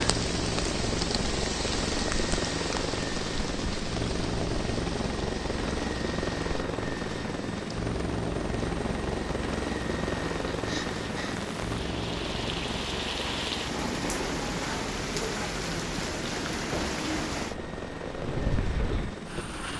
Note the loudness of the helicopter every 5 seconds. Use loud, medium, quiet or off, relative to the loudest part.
loud, loud, loud, medium.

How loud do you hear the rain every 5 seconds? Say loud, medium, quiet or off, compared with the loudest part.
loud, medium, loud, loud.